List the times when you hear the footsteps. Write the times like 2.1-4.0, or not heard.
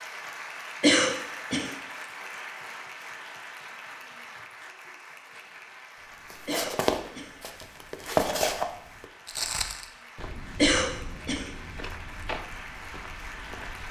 6.2-13.8.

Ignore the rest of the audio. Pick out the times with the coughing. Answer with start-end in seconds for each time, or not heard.
0.8-1.7, 6.5-7.3, 10.6-11.4.